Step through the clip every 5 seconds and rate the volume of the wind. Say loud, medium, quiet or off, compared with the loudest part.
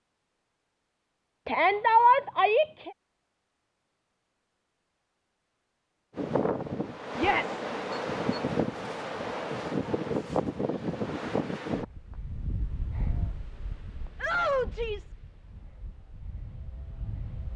off, loud, loud, quiet.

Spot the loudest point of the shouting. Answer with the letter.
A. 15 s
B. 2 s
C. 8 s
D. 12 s
B.